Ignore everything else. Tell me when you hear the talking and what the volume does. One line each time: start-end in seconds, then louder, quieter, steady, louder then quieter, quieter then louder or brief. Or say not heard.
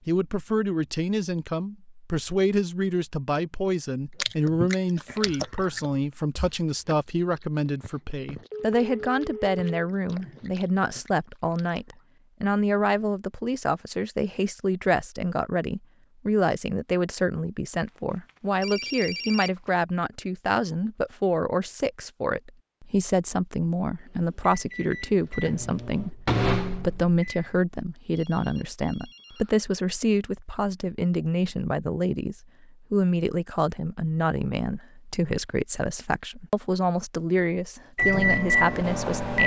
0.1-39.4 steady.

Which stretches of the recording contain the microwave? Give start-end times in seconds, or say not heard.
24.1-27.6, 38.0-39.4.